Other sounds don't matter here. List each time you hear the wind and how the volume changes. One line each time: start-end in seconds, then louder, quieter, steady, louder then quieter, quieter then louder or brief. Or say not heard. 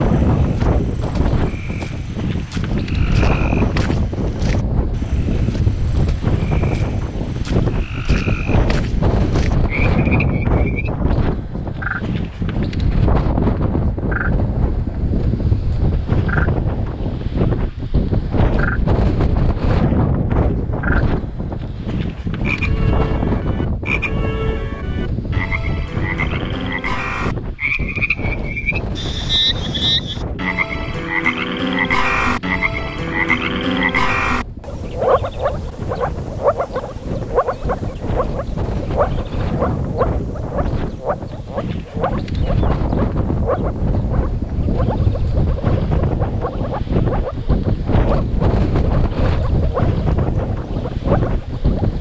0.0-51.9 quieter then louder.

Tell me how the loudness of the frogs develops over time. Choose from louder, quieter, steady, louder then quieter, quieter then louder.
louder then quieter.